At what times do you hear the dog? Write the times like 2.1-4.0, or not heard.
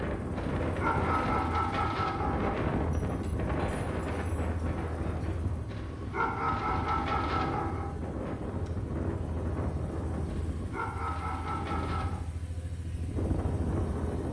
0.3-2.5, 5.7-7.9, 10.2-12.2.